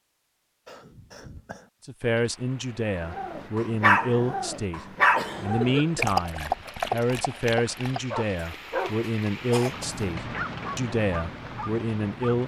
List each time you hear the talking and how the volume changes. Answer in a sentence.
The talking can be heard briefly from 1.9 to 4.8 s; and from 5.4 to 12.4 s, at a steady volume.